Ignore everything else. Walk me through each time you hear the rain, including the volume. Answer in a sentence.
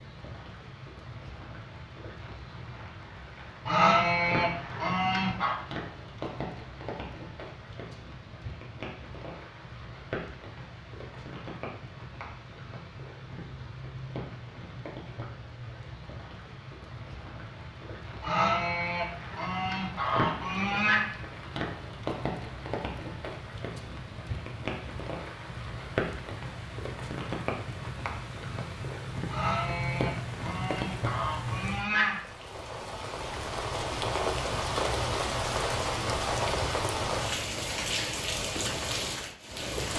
The rain can be heard from 0.0 to 39.9 s, getting louder.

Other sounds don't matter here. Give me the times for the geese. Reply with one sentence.
You can hear the geese from 3.6 to 5.5 s, from 18.2 to 21.1 s and from 29.3 to 32.2 s.